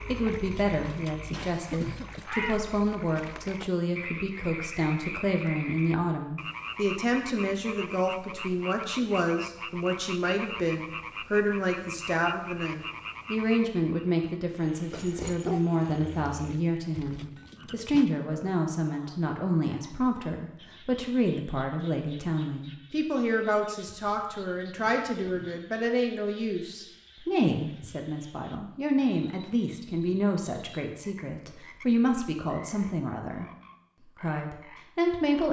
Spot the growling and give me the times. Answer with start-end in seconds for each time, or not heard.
14.9-16.6.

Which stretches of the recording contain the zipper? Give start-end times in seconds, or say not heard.
not heard.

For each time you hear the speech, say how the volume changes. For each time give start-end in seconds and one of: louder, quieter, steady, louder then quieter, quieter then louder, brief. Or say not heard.
0.0-35.4 steady.